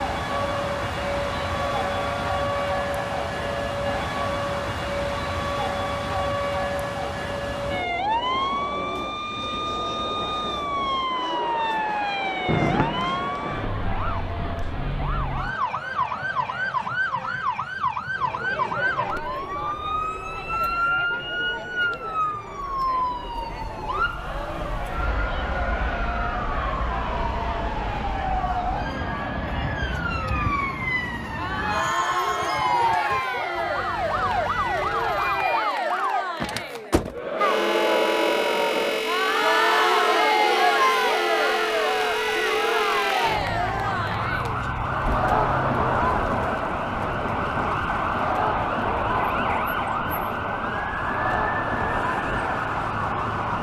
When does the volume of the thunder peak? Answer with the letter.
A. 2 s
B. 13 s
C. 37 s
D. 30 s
B.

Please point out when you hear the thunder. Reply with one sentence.
You can hear the thunder from 12.4 to 15.6 s.